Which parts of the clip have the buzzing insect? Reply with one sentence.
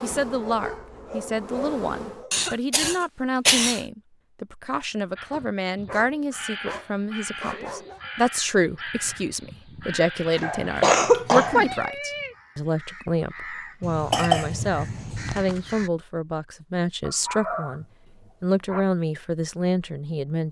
The buzzing insect can be heard from 0.0 to 2.2 s.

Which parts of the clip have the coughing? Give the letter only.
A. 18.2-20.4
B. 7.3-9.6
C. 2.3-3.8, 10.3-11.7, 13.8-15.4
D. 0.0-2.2
C.